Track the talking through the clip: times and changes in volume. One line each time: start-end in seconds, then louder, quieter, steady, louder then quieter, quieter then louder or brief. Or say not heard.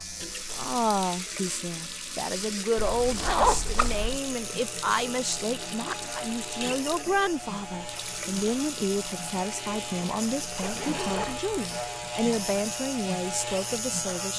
0.2-14.3 steady.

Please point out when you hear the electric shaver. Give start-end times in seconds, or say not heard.
0.0-14.3.